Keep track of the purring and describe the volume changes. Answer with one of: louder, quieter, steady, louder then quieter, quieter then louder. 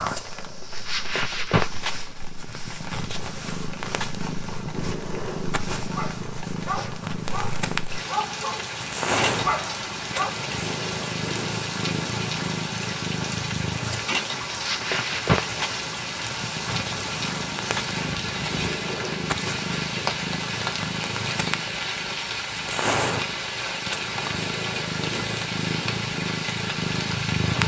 steady.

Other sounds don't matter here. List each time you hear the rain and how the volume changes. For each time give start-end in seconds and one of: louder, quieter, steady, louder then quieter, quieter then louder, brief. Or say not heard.
0.0-27.6 louder.